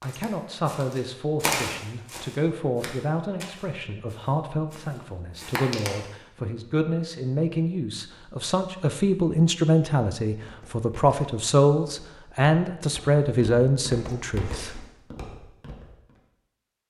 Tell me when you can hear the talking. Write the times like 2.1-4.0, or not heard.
0.0-14.8.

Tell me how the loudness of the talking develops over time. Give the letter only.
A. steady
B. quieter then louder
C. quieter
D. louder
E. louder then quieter
D.